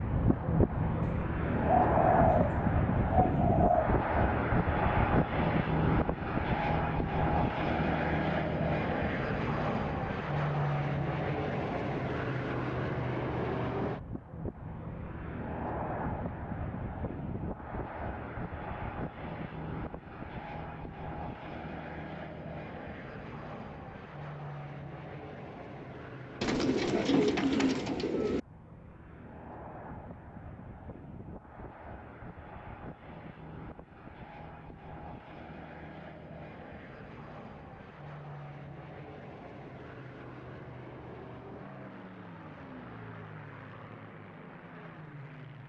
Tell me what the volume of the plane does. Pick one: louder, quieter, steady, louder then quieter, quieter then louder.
quieter.